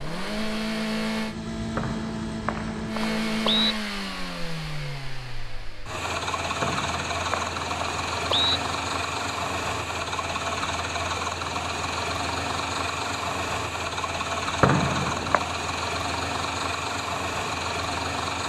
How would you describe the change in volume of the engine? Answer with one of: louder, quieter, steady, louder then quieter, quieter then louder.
steady.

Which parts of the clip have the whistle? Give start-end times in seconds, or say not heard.
1.8-3.8, 6.6-8.6, 14.6-15.4.